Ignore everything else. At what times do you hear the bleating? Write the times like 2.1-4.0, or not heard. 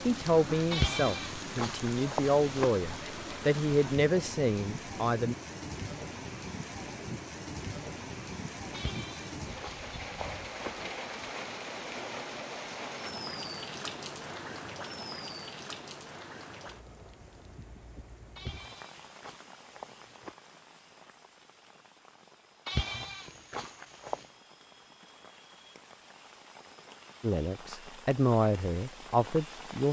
0.7-2.7, 8.7-10.8, 18.4-20.4, 22.6-24.3.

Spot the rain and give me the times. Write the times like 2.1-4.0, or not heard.
0.0-29.8.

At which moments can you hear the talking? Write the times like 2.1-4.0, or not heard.
0.1-5.3, 27.2-29.8.